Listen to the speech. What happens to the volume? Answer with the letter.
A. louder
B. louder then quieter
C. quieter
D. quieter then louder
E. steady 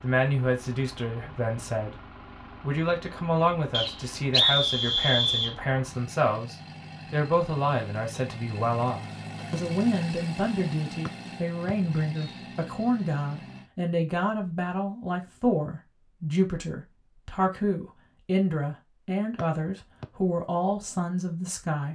E.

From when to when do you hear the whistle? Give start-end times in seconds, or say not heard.
3.7-5.5, 11.1-12.4, 19.4-20.1.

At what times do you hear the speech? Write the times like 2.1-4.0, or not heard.
0.0-21.9.